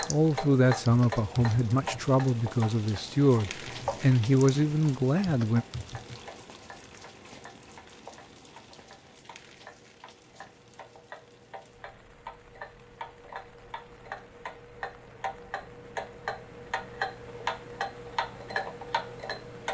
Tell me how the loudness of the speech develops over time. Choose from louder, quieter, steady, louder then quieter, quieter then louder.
steady.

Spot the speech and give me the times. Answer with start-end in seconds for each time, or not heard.
0.1-5.7.